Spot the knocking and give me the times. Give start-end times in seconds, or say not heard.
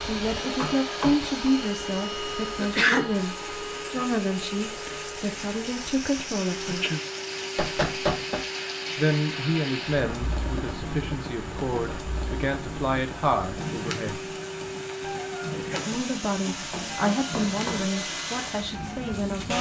0.6-1.5, 7.5-8.4, 16.7-17.9.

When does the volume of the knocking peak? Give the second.
8 s.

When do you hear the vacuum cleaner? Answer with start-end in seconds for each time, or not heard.
0.0-19.5.